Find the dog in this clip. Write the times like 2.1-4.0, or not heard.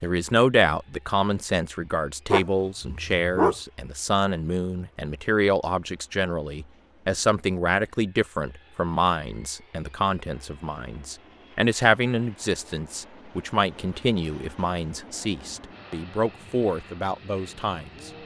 2.3-3.5.